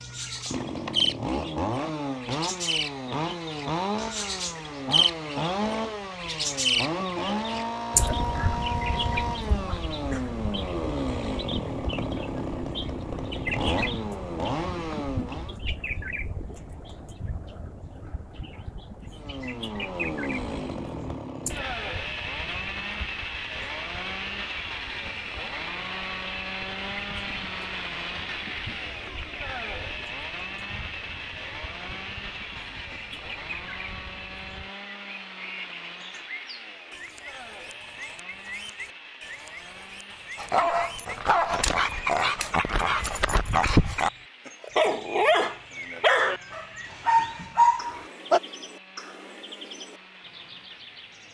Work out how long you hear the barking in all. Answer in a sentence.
The barking can be heard for 8 seconds in total.